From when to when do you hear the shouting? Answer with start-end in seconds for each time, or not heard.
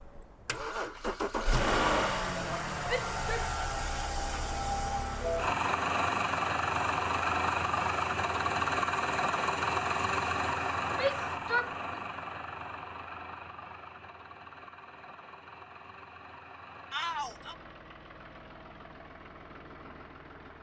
2.9-3.5, 10.9-12.0, 16.9-17.6.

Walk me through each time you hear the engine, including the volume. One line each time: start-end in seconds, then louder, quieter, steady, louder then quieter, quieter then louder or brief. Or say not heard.
0.0-20.5 quieter.